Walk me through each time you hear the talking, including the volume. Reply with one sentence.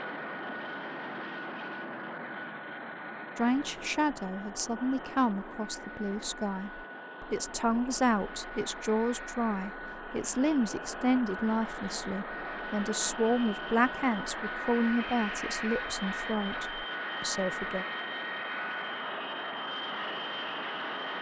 The talking can be heard from 3.4 to 17.9 s, at a steady volume.